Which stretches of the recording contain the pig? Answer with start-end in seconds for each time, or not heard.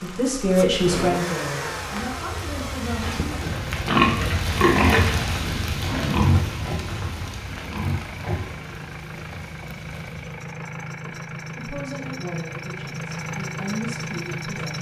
3.0-8.4.